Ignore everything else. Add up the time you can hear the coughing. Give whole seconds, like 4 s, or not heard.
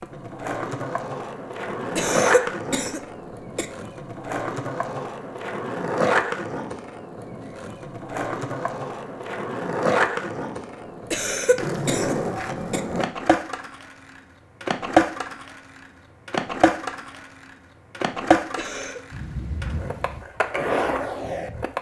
4 s.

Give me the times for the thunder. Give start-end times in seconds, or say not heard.
19.1-20.2.